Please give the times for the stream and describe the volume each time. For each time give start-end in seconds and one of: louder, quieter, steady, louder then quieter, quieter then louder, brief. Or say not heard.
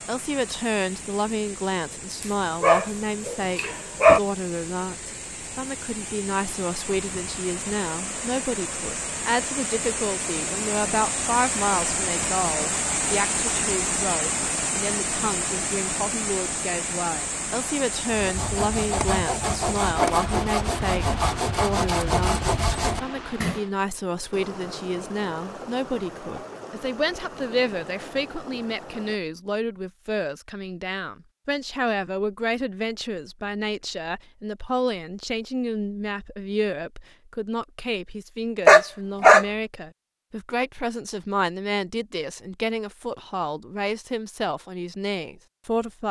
0.0-29.2 louder then quieter.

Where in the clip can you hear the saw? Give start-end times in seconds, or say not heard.
18.1-23.6.